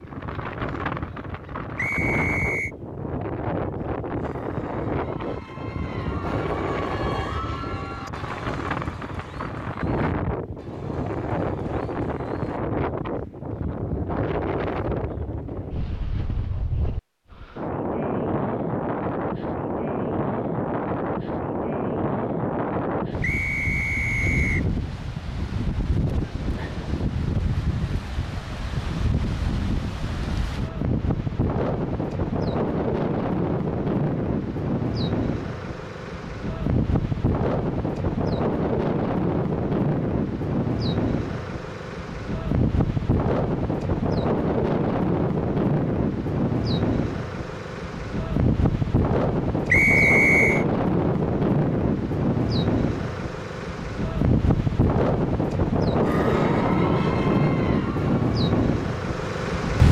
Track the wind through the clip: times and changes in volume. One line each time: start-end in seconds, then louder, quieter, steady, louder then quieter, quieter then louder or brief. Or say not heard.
0.0-59.8 louder.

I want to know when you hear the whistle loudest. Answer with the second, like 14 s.
50 s.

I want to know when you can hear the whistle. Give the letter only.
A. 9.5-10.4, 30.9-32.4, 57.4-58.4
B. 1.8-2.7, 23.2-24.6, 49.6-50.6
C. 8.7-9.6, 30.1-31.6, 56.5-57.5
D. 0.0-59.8
B.